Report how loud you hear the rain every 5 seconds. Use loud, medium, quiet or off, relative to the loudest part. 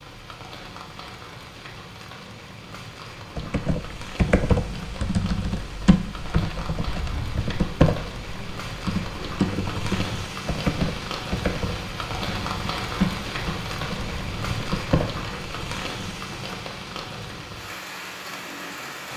medium, medium, loud, loud.